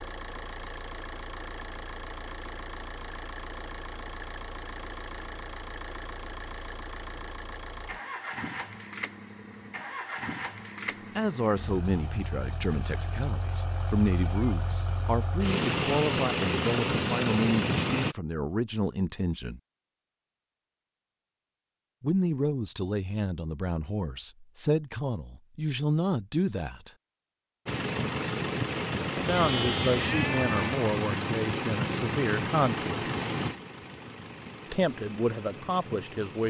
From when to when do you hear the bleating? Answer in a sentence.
The bleating can be heard from 29.1 to 30.9 s.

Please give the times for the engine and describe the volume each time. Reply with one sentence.
You can hear the engine from 0.0 to 18.1 s, getting louder; and from 27.6 to 36.4 s, getting quieter.